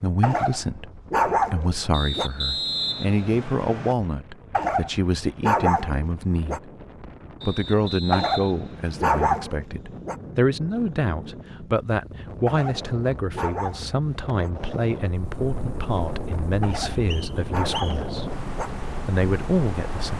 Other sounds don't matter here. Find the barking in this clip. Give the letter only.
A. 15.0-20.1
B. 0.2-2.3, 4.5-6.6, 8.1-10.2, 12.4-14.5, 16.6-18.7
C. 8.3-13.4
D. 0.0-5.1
B.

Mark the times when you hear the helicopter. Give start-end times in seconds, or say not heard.
15.0-20.1.